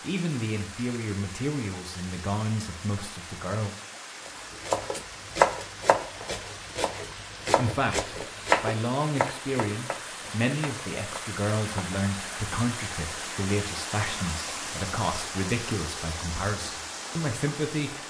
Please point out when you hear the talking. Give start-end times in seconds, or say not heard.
0.0-3.8, 7.5-18.0.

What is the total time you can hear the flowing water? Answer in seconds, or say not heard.
18 s.